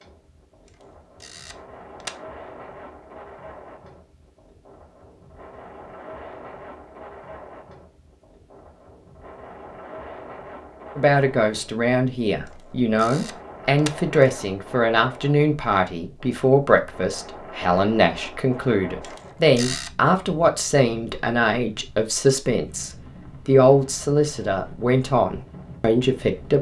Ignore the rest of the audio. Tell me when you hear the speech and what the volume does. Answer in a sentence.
You can hear the speech from 10.9 to 26.5 s, at a steady volume.